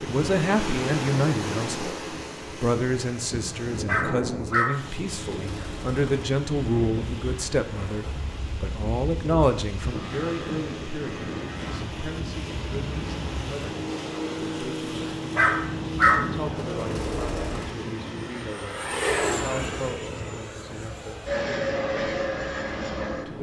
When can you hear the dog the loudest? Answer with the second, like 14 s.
16 s.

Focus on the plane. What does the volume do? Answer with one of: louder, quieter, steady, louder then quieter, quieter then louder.
louder.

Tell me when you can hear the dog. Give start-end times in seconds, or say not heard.
3.9-6.3, 15.3-17.8.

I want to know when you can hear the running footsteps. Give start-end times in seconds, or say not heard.
not heard.